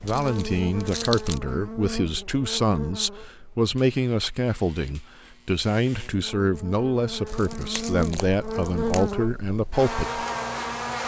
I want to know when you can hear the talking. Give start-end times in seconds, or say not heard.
0.0-10.2.